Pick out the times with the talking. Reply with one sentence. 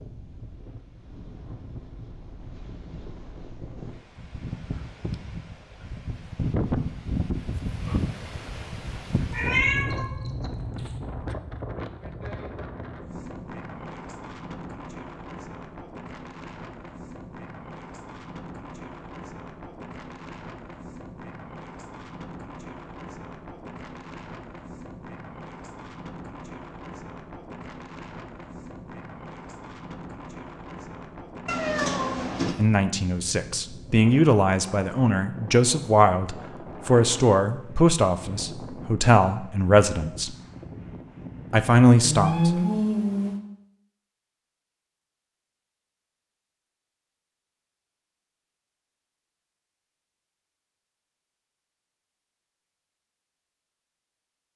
You can hear the talking from 32.5 to 40.4 s and from 41.5 to 42.5 s.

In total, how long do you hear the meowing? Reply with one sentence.
You can hear the meowing for 3 seconds altogether.